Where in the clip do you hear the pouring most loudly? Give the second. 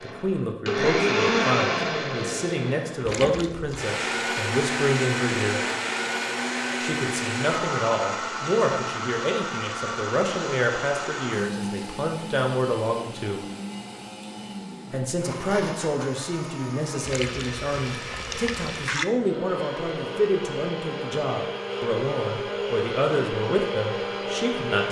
19 s.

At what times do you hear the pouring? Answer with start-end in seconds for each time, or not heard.
3.0-3.9, 17.1-19.1.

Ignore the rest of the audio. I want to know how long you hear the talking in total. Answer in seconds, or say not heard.
22 s.